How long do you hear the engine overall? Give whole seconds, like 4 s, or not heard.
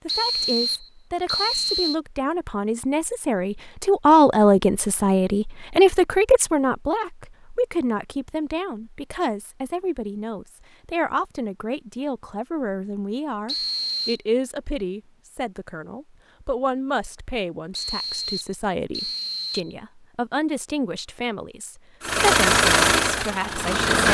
2 s.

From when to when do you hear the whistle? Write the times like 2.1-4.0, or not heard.
0.1-1.9, 13.4-14.2, 17.7-19.8.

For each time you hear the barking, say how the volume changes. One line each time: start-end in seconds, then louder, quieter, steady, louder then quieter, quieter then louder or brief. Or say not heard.
not heard.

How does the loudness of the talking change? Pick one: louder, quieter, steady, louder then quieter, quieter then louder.
quieter.